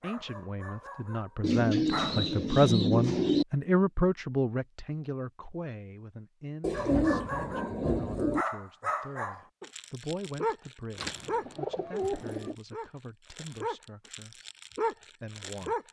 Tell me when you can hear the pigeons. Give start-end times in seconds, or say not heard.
1.4-3.5, 6.6-8.4, 10.9-12.6.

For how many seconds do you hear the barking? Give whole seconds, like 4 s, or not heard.
11 s.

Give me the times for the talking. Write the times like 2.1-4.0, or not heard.
0.0-14.3, 15.2-15.8.